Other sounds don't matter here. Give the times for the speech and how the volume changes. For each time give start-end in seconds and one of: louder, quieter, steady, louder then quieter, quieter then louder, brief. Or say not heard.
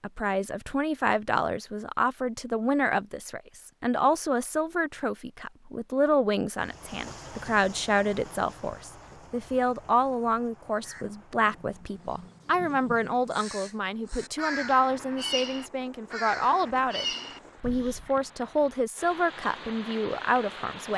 0.0-20.9 steady.